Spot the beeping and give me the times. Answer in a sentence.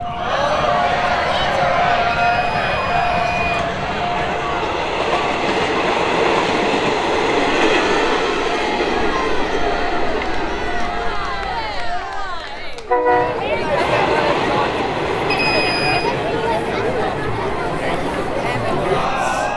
You can hear the beeping from 2.1 to 3.6 s and from 15.3 to 16.1 s.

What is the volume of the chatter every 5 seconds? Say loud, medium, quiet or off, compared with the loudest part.
loud, medium, loud, loud.